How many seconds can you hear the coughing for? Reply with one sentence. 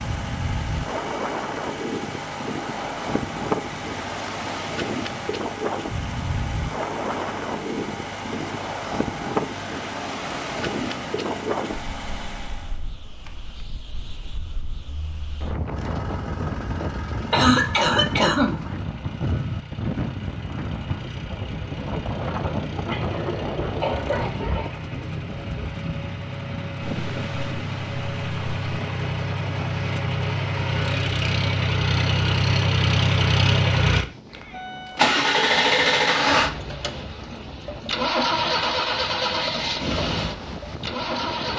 You can hear the coughing for 3 seconds altogether.